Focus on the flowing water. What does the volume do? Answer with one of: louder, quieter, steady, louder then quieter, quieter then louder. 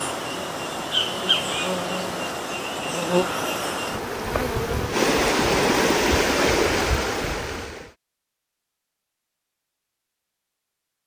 louder.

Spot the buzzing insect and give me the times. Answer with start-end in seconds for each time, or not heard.
0.0-5.0.